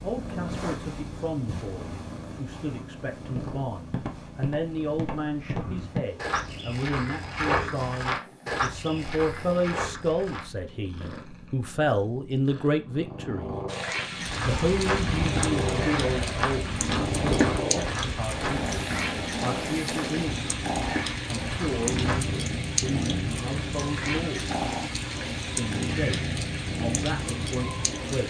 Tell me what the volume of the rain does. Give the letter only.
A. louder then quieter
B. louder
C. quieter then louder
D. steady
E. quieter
D.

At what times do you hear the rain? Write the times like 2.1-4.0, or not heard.
13.7-28.2.